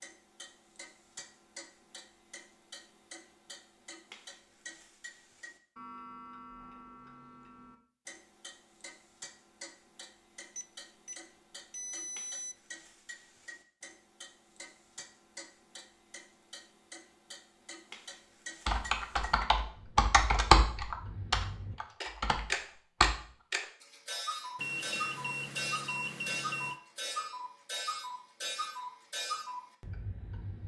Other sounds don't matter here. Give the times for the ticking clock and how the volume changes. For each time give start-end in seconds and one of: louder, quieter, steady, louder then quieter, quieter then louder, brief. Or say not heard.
0.0-30.6 louder.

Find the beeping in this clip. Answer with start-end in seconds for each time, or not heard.
10.6-12.6, 24.6-26.8.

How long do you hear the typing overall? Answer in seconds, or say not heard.
5 s.